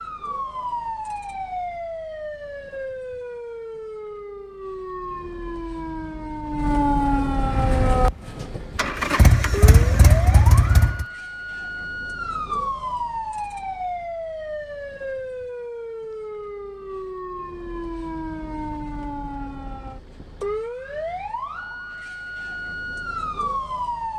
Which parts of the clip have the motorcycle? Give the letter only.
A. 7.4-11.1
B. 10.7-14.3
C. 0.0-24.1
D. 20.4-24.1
A.